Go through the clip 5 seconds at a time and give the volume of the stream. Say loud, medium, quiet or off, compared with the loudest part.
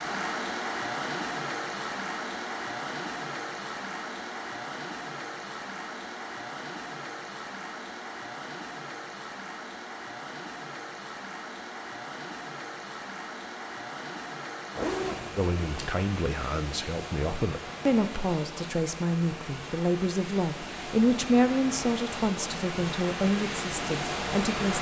loud, medium, medium, medium, loud.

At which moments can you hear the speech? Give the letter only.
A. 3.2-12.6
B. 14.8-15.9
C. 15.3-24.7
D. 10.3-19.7
C.